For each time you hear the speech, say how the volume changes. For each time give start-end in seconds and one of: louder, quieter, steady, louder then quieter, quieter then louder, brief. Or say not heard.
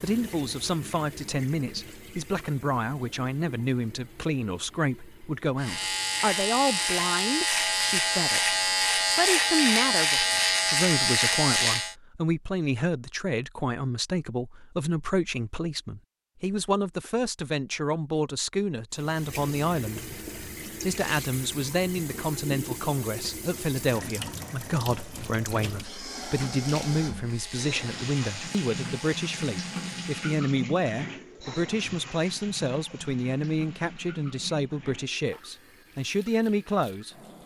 0.0-37.4 steady.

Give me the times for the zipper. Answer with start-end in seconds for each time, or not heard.
not heard.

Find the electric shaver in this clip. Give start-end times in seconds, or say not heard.
5.5-11.9, 27.2-30.2.